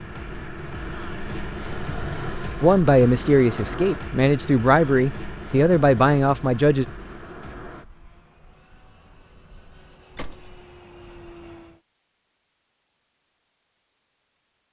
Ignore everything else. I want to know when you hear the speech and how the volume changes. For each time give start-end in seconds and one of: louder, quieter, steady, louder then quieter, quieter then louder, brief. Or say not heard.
2.6-6.8 steady.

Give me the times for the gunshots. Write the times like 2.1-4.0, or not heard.
10.2-10.6.